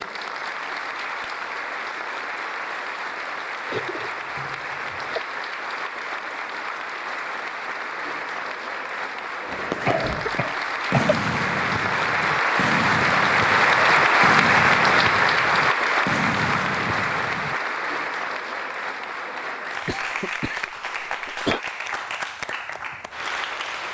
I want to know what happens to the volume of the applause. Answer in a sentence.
The volume of the applause goes up, then down.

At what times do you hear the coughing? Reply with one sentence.
The coughing can be heard from 3.7 to 5.2 s, from 9.8 to 11.2 s and from 19.9 to 21.6 s.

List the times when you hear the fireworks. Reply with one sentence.
The fireworks can be heard from 9.4 to 17.6 s.